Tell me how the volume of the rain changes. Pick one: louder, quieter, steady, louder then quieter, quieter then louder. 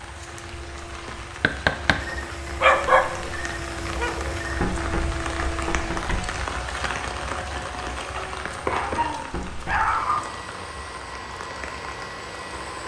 louder then quieter.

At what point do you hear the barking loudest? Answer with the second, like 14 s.
3 s.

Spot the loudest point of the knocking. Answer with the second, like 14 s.
2 s.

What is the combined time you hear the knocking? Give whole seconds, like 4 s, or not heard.
3 s.